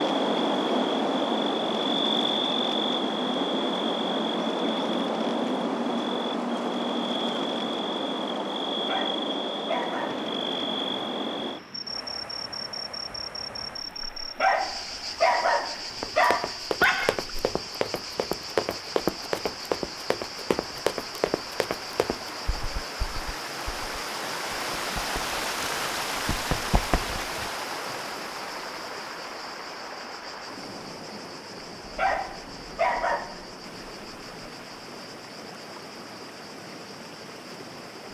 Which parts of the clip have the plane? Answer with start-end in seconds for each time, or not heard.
not heard.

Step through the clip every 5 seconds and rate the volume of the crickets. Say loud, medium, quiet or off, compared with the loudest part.
loud, loud, medium, quiet, quiet, quiet, quiet, quiet.